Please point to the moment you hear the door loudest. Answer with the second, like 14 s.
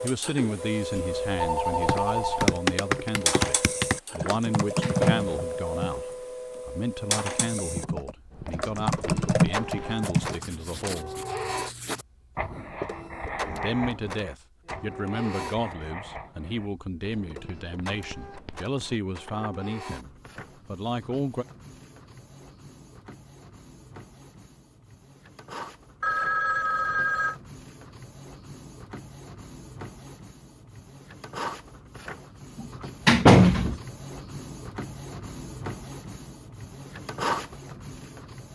33 s.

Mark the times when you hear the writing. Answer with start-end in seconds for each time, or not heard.
8.3-19.0.